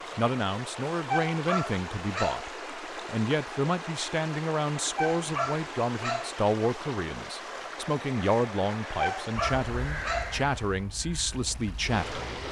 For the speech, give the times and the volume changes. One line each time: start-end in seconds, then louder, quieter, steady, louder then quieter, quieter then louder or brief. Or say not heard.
0.1-12.4 steady.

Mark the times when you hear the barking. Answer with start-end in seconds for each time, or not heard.
1.1-2.5, 5.0-6.3, 8.9-10.3.